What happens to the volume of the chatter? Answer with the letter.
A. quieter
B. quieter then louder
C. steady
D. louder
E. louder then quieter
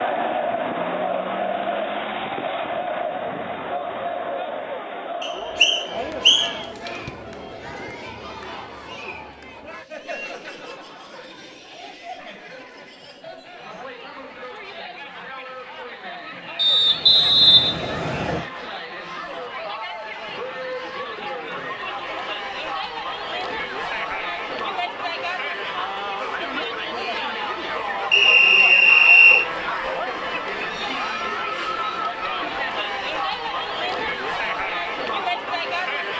B.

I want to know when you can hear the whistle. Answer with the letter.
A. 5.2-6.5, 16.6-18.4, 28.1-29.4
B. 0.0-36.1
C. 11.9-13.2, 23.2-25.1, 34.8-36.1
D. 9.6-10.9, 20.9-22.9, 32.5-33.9
A.